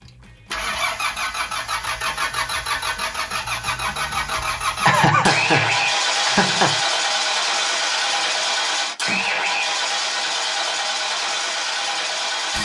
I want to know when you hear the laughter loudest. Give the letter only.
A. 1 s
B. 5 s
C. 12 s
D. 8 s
B.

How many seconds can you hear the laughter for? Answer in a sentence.
The laughter can be heard for 2 seconds in total.